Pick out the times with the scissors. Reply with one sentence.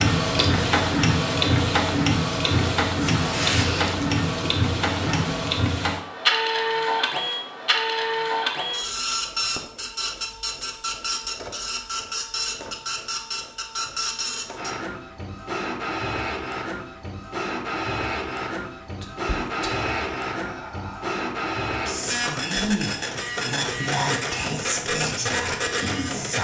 You can't hear the scissors here.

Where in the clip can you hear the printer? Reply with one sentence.
The printer can be heard from 0.0 to 26.3 s.